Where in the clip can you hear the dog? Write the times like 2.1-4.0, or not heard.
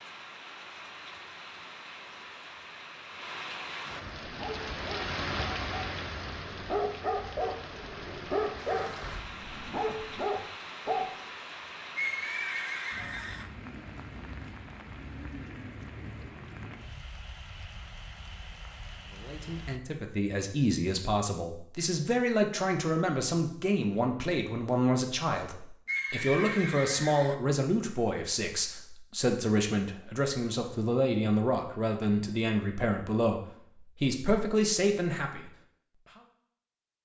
4.2-11.1.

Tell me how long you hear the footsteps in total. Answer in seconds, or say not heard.
not heard.